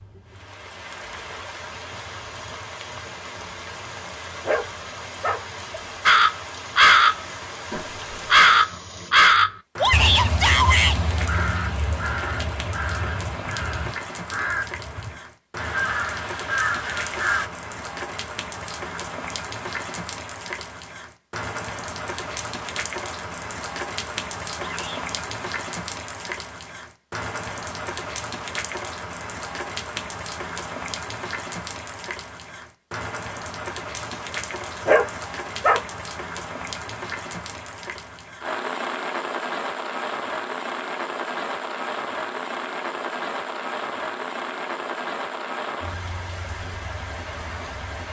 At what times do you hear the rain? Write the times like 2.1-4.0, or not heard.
0.0-48.0.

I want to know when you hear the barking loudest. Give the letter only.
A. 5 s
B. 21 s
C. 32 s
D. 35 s
D.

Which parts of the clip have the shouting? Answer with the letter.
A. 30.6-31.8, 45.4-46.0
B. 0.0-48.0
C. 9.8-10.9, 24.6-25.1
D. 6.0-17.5
C.